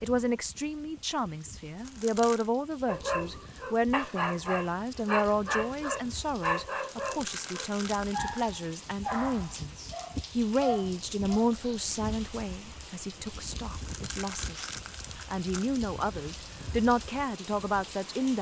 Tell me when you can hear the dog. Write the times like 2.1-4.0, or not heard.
2.9-11.8.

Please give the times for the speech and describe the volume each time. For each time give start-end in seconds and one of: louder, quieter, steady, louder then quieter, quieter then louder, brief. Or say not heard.
0.0-18.3 steady.